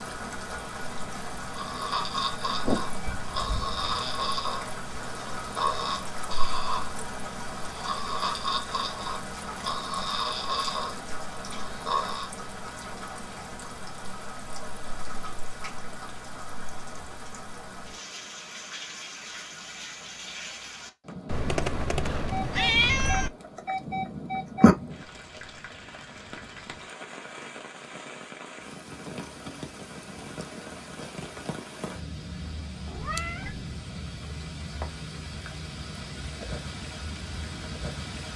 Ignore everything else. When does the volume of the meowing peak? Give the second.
23 s.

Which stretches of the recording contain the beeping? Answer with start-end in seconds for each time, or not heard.
22.3-24.8.